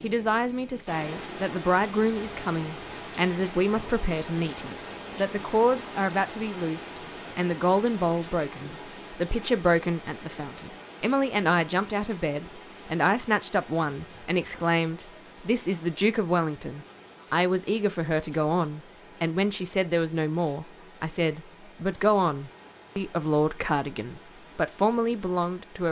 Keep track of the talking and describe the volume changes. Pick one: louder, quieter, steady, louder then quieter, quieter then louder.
steady.